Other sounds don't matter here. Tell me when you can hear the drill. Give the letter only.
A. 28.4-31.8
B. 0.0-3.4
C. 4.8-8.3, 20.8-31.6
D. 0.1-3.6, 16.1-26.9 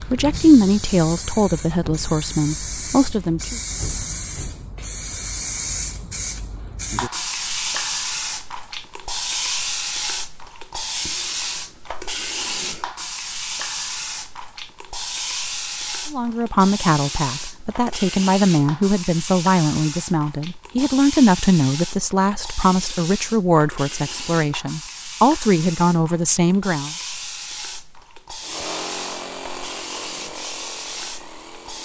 A.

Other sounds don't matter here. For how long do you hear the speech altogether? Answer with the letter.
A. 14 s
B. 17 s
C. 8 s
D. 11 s
A.